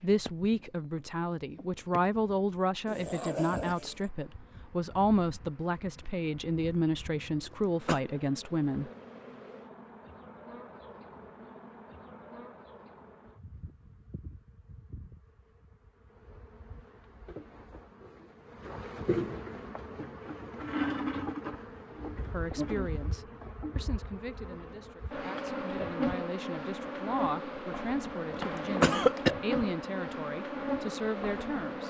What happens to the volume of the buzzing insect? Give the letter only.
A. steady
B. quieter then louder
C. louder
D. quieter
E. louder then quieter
C.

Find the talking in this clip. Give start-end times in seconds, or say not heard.
0.0-8.9, 22.3-31.8.